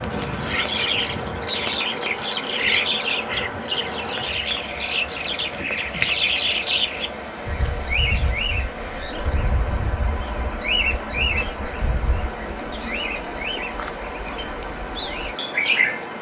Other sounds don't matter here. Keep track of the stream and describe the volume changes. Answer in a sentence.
The loudness of the stream stays about the same.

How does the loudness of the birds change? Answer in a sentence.
The volume of the birds goes down.